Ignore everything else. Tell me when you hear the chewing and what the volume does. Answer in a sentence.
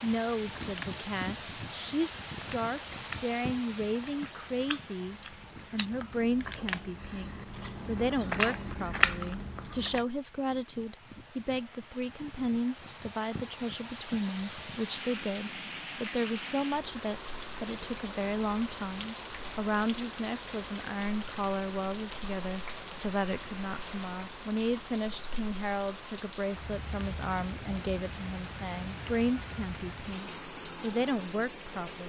The chewing can be heard from 0.3 to 10.1 s, getting louder.